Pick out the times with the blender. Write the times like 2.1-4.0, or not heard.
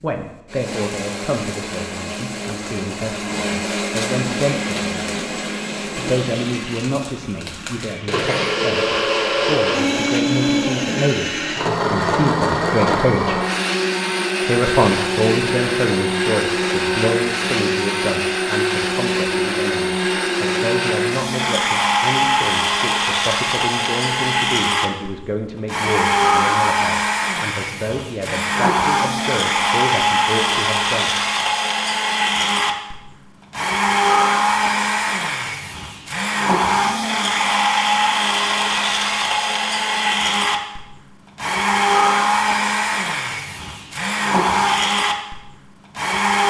0.0-46.4.